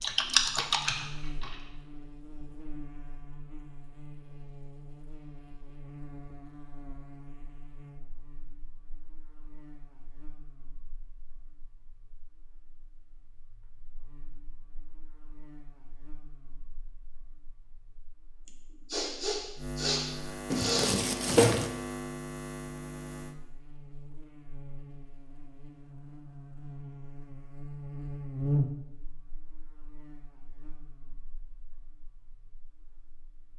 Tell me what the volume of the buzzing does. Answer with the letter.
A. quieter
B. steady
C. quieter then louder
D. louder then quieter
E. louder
C.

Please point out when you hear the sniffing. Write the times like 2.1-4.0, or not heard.
18.4-21.1.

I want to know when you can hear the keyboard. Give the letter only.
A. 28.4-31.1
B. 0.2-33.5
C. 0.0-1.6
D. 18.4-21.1
C.